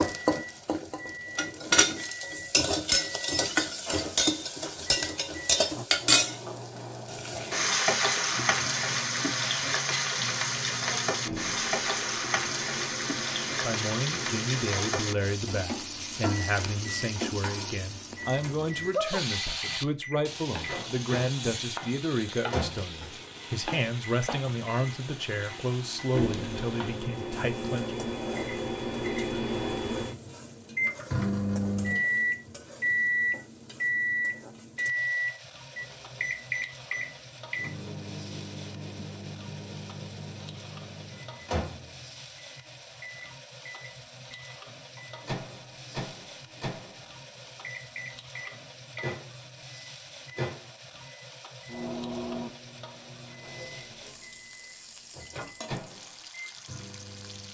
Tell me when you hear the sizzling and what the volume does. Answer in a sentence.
You can hear the sizzling from 0.0 to 57.4 s, getting quieter.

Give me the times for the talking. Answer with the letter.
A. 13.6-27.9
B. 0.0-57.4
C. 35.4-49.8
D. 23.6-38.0
A.